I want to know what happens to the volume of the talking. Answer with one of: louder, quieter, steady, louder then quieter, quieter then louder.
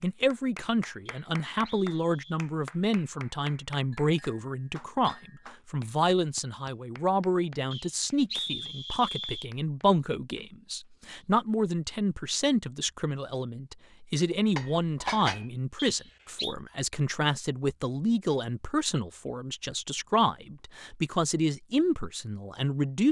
steady.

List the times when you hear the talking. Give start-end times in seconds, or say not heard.
0.0-23.0.